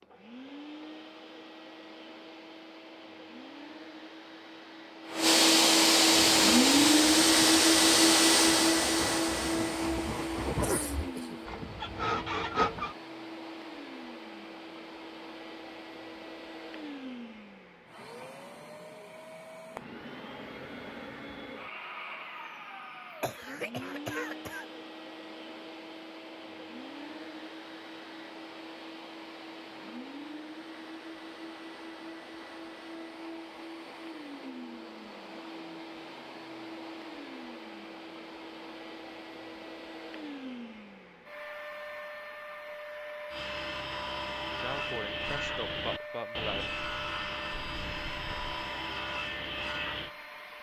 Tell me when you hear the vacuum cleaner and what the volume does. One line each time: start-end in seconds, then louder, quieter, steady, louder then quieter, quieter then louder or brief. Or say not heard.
0.0-50.5 quieter.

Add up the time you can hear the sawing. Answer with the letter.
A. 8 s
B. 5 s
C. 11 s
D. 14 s
D.